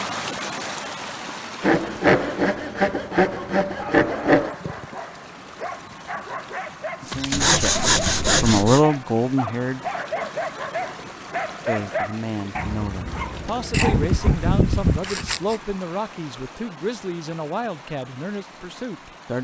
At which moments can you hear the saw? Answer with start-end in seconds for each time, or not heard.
1.6-4.5, 7.3-8.8, 13.7-15.6.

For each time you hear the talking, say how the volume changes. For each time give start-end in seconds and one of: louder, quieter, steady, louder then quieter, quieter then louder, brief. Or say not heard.
7.0-9.9 brief
11.7-19.3 steady.